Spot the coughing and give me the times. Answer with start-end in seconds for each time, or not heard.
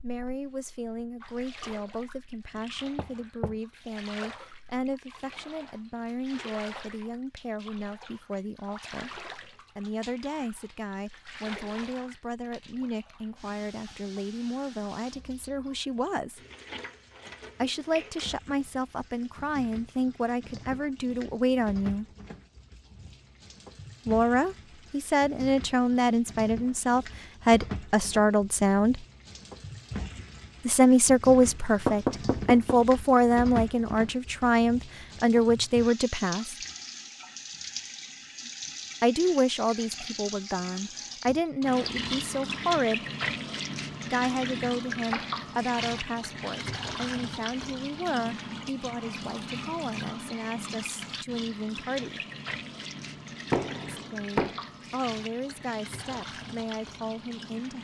not heard.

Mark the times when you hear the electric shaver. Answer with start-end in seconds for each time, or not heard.
not heard.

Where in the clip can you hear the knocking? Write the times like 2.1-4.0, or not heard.
2.5-3.6, 31.4-32.8, 53.5-54.5.